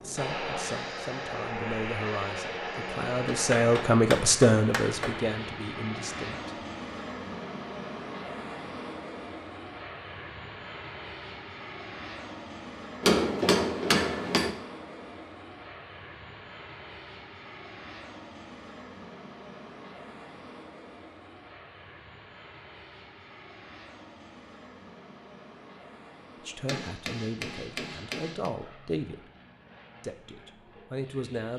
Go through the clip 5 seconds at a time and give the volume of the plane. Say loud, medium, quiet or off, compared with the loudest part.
loud, loud, medium, medium, quiet, quiet, quiet.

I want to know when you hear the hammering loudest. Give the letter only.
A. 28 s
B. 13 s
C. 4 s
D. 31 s
B.